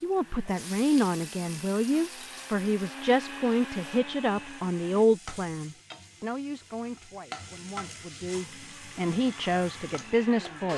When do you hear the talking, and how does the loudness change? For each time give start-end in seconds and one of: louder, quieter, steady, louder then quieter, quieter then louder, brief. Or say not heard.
0.0-10.7 quieter then louder.